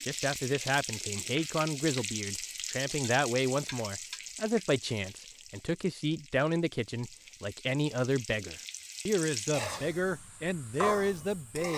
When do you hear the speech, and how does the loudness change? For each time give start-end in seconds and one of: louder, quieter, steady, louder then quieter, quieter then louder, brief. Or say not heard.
0.1-11.7 steady.